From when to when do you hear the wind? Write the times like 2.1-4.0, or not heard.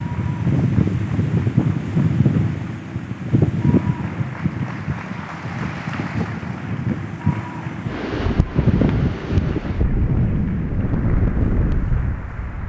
0.0-12.6.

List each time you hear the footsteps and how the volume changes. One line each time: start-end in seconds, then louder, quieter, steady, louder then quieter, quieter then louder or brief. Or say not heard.
not heard.